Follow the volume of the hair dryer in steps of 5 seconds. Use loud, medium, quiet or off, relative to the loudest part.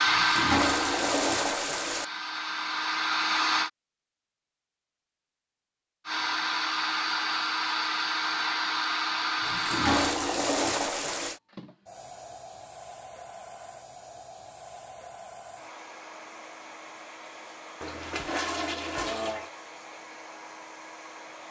loud, loud, quiet, quiet, quiet.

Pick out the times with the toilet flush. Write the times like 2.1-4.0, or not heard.
0.1-2.0, 9.4-11.4, 17.8-19.5.